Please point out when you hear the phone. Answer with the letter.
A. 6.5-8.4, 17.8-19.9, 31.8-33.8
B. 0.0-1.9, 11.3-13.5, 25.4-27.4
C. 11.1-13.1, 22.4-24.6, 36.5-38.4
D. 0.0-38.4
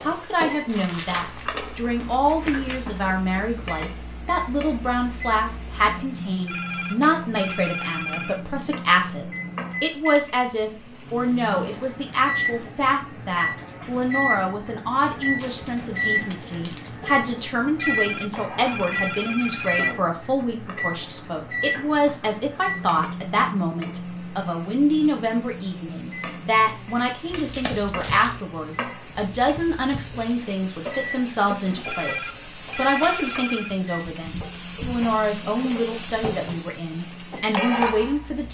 A.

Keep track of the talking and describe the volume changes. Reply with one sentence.
The loudness of the talking stays about the same.